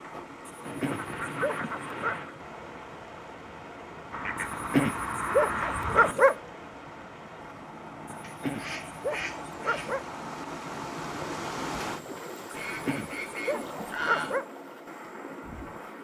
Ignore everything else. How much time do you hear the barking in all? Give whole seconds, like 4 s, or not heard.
7 s.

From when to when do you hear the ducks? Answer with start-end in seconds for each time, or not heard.
0.6-2.4, 4.1-6.2, 8.2-10.1, 12.5-14.4.